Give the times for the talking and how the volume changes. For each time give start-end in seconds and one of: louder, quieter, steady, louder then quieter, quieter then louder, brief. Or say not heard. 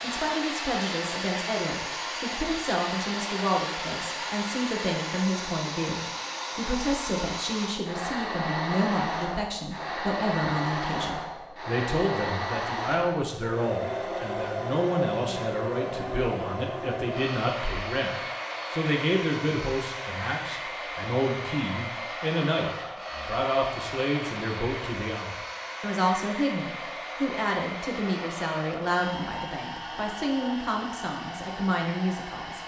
0.0-18.1 steady
18.7-32.6 steady.